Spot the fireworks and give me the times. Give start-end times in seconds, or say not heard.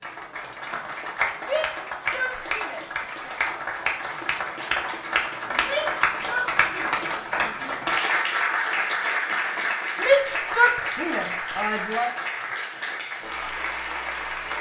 not heard.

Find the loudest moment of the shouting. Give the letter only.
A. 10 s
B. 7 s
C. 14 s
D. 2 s
A.